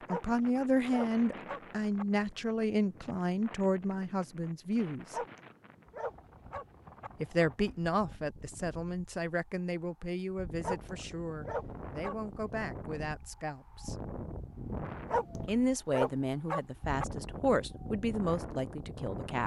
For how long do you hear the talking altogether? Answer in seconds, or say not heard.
16 s.